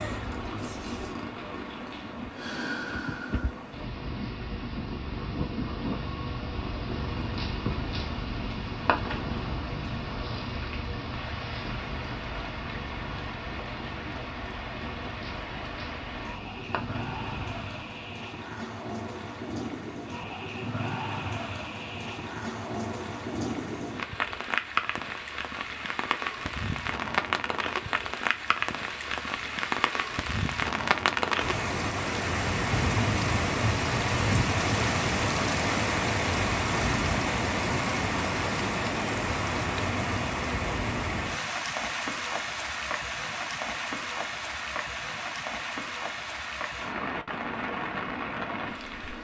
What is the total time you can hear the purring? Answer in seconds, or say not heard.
18 s.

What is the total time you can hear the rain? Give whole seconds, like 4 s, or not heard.
49 s.